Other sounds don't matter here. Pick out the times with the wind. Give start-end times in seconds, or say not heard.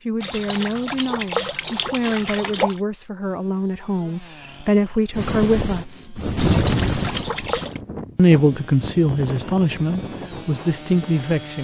5.1-11.5.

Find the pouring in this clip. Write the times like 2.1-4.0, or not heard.
0.2-2.8, 6.3-7.8.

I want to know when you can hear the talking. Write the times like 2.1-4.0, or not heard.
0.1-6.2, 8.2-11.5.